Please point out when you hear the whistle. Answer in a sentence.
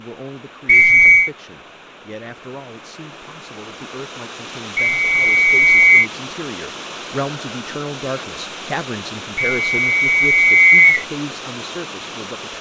The whistle can be heard from 0.7 to 1.3 s, from 4.8 to 6.1 s and from 9.4 to 11.1 s.